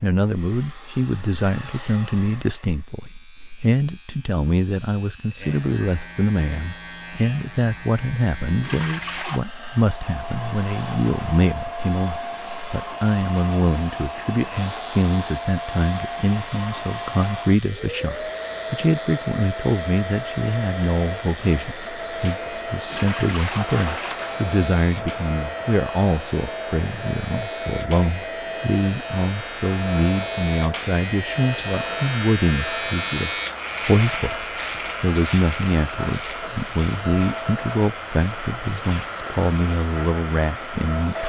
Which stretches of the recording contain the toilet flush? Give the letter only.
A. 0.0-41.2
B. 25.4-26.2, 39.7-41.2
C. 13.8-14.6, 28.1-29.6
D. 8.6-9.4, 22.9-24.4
D.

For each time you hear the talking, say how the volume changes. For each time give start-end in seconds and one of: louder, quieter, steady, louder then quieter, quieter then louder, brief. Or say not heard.
0.0-41.2 steady.